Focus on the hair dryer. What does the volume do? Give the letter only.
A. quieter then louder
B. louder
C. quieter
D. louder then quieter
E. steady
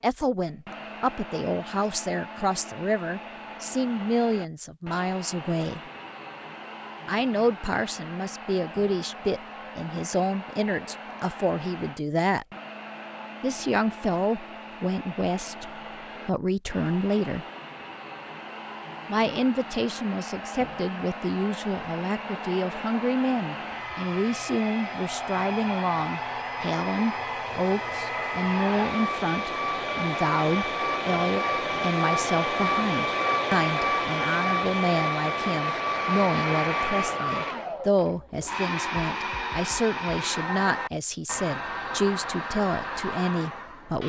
B.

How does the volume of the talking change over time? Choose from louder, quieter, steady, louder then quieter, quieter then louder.
steady.